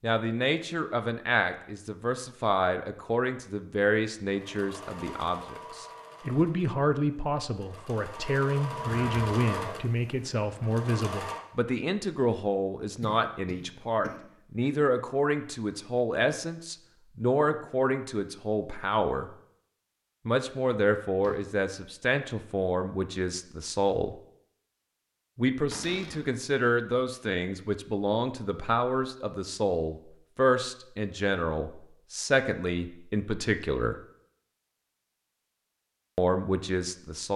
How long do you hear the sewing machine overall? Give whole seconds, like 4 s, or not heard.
7 s.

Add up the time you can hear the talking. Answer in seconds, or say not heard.
33 s.